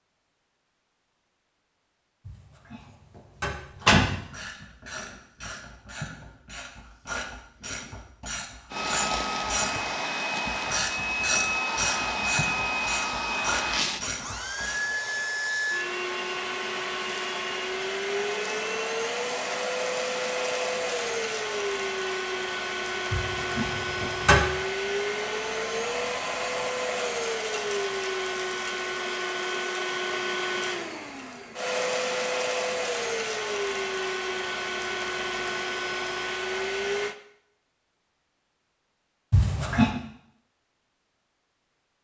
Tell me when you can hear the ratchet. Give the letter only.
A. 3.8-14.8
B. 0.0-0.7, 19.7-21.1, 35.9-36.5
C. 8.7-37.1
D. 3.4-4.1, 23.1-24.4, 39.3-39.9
A.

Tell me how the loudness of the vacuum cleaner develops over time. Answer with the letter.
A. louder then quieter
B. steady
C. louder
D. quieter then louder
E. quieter
B.